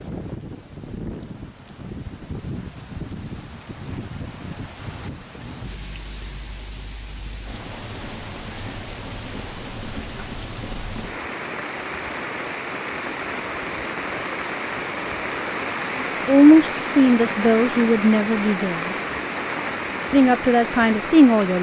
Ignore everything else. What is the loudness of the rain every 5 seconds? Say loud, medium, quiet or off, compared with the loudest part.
medium, medium, loud, loud, loud.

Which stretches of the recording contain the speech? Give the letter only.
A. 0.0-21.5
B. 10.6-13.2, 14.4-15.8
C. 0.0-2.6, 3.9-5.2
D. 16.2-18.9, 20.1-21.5
D.